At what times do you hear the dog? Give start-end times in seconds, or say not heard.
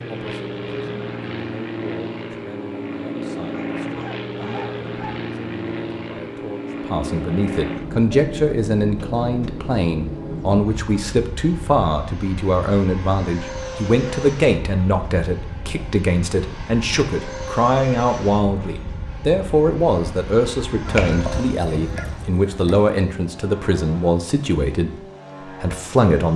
3.5-5.2.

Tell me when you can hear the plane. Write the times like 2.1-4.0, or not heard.
0.0-26.3.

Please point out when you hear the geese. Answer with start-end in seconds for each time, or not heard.
20.9-22.8.